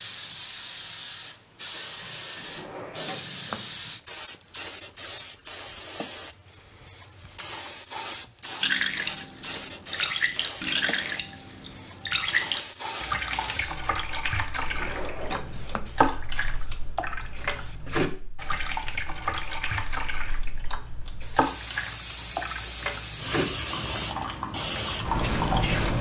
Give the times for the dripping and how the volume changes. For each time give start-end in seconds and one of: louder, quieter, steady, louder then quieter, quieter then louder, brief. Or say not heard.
8.6-25.8 steady.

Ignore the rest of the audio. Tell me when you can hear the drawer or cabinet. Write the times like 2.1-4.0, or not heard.
2.4-3.8, 14.6-15.9.